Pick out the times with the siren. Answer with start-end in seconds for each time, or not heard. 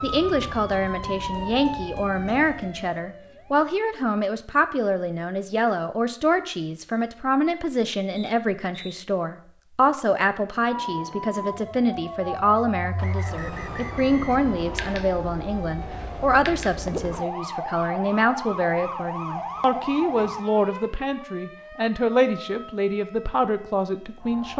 0.0-3.9, 10.7-24.5.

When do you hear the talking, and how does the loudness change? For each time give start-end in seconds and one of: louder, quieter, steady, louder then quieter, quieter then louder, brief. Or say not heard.
0.0-24.5 steady.